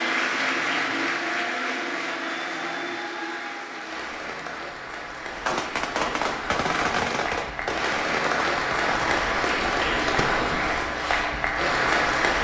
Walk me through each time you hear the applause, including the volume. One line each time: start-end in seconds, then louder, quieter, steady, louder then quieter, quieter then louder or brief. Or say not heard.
0.0-12.3 quieter then louder.